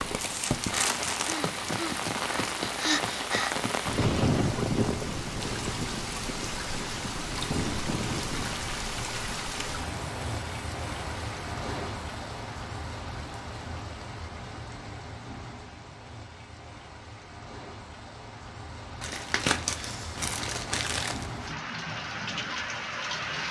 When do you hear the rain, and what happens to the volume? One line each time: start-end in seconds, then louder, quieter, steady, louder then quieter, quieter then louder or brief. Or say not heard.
0.0-23.4 quieter then louder.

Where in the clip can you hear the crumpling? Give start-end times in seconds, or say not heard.
0.1-1.4, 19.0-21.2.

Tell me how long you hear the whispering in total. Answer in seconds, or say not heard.
not heard.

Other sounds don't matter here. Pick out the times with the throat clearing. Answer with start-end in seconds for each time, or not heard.
not heard.